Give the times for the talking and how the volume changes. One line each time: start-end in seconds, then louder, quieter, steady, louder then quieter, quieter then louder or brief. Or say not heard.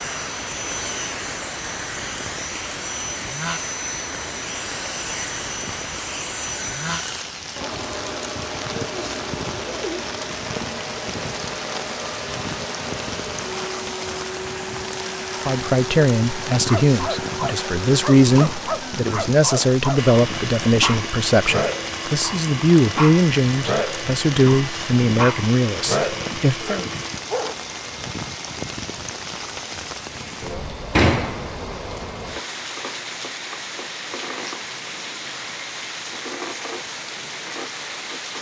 15.4-26.9 steady.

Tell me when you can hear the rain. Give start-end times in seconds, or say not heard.
0.0-38.3.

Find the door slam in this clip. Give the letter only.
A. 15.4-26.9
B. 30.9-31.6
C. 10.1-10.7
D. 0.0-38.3
B.